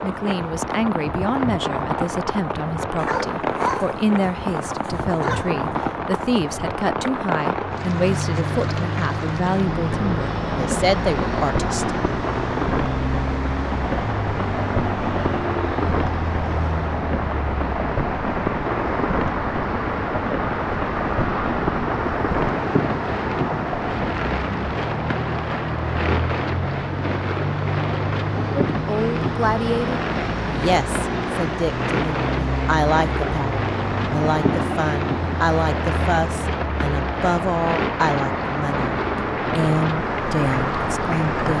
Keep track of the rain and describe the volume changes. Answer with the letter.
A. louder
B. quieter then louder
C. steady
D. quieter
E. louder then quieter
C.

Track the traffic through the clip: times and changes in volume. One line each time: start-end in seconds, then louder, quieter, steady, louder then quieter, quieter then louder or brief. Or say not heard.
7.5-41.5 steady.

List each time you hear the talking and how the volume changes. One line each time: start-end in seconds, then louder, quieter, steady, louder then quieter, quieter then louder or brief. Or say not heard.
0.0-11.9 steady
28.7-41.5 steady.